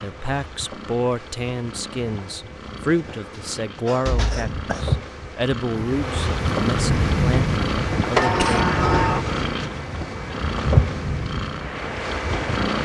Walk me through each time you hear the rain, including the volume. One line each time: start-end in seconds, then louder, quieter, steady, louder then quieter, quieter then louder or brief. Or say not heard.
5.7-12.8 quieter.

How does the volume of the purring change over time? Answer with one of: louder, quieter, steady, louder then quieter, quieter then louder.
louder.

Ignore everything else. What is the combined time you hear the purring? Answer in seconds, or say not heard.
13 s.